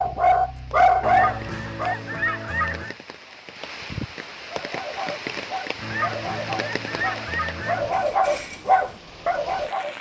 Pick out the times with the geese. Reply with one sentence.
You can hear the geese from 1.0 to 3.0 s and from 5.8 to 8.1 s.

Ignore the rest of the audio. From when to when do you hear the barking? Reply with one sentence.
The barking can be heard from 0.0 to 2.1 s and from 4.5 to 9.9 s.